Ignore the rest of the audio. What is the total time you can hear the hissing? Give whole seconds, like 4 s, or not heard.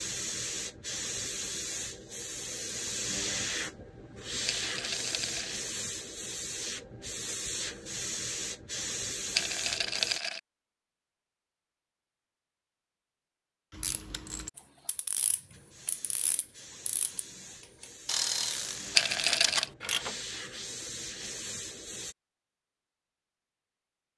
17 s.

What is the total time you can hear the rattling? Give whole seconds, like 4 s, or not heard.
3 s.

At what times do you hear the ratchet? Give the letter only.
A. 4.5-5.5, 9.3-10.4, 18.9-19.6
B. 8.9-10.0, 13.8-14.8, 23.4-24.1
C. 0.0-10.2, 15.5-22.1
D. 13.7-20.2
D.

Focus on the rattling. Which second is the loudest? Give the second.
19 s.